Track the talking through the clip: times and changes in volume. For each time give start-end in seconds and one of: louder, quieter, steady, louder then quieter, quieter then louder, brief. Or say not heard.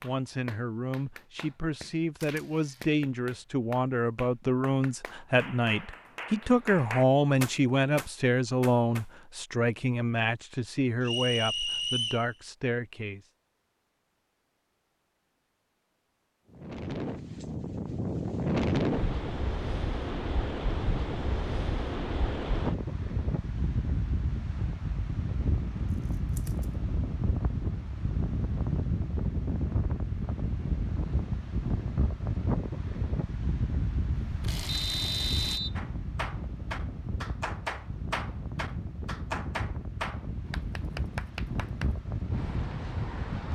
0.0-13.2 louder then quieter.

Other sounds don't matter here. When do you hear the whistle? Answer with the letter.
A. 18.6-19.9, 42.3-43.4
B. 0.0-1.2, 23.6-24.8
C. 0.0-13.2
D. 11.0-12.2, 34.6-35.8
D.